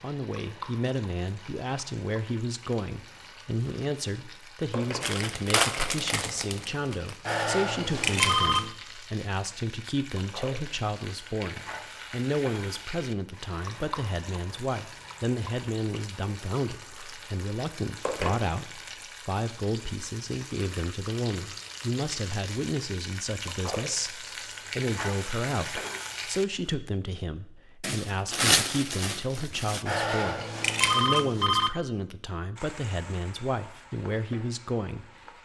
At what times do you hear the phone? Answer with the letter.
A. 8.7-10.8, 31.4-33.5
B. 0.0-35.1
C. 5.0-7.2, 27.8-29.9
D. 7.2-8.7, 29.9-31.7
D.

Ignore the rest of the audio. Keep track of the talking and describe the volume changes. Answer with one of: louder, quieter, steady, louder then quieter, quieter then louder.
steady.